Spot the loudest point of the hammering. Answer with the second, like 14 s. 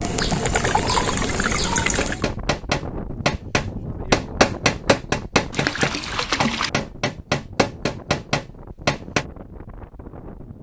4 s.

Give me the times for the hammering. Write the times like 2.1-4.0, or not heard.
1.9-9.2.